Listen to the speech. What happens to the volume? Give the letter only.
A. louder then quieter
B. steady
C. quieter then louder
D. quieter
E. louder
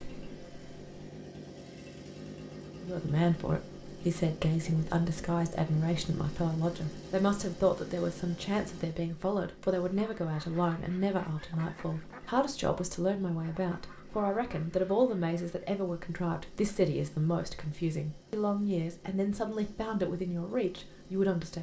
B.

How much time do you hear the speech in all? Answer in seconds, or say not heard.
19 s.